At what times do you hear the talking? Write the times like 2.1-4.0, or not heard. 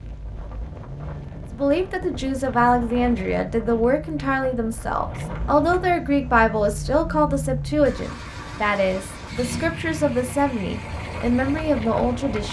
1.6-12.4.